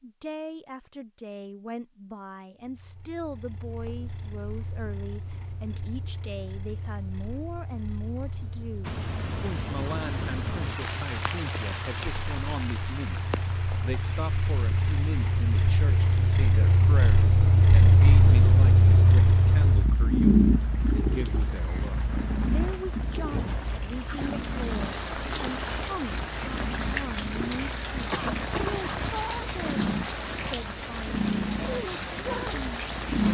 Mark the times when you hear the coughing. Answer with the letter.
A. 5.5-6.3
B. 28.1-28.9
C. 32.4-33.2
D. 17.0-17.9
B.